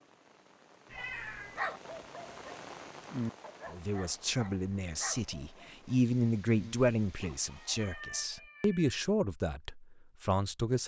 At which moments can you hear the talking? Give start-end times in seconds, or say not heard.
3.7-10.8.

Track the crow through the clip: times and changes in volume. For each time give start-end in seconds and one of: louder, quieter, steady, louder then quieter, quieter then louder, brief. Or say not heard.
not heard.